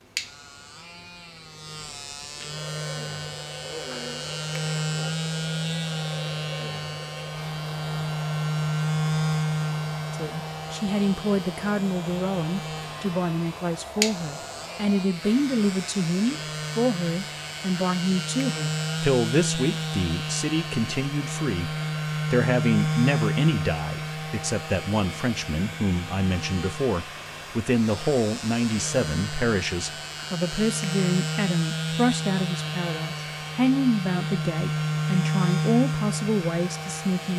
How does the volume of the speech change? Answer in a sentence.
The volume of the speech stays about the same.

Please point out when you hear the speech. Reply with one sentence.
The speech can be heard from 10.1 to 37.3 s.